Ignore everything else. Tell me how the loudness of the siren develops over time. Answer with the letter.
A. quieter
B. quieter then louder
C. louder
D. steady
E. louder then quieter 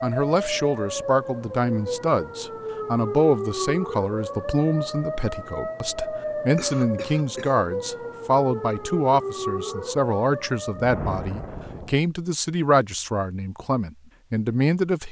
D.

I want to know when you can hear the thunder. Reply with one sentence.
You can hear the thunder from 10.8 to 11.9 s.